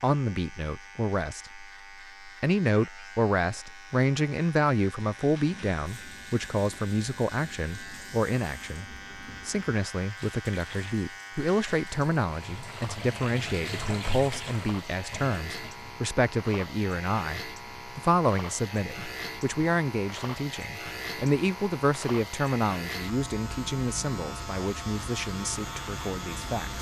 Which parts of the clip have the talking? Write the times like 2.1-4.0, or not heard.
0.0-26.7.